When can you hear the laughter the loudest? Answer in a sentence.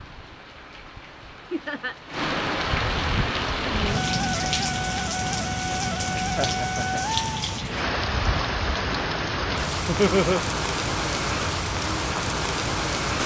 The loudest moment of the laughter is at 10 seconds.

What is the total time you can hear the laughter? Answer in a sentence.
You can hear the laughter for 2 seconds altogether.